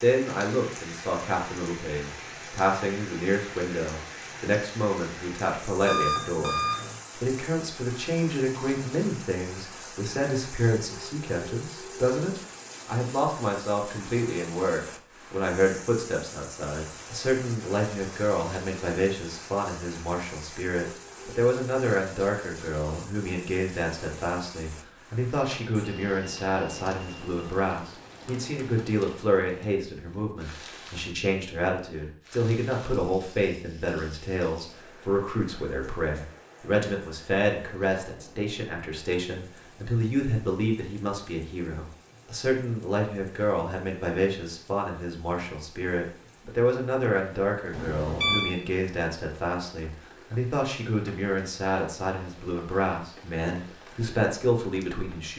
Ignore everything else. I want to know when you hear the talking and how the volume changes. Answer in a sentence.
The talking can be heard from 0.0 to 55.3 s, at a steady volume.